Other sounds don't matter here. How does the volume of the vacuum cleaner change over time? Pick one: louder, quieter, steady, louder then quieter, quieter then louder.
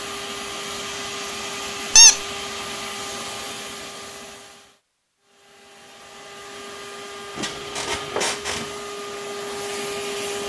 quieter then louder.